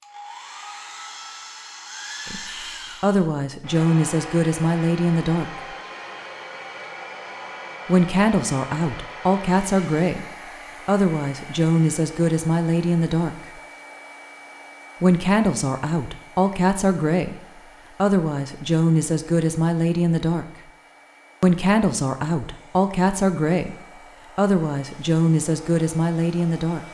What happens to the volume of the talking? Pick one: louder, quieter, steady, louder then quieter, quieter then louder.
steady.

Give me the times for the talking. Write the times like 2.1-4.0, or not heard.
2.3-5.7, 7.8-13.5, 15.0-20.4, 21.4-26.8.